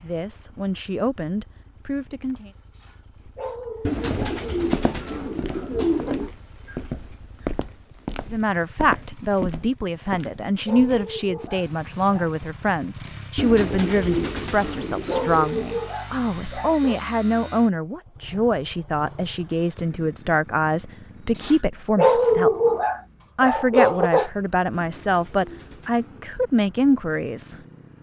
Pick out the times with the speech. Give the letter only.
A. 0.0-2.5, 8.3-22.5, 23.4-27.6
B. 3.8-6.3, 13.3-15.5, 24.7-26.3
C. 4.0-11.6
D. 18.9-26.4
A.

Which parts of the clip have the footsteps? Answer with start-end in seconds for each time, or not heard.
4.0-11.6.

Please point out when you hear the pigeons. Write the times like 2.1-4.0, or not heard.
3.8-6.3, 13.3-15.5, 24.7-26.3.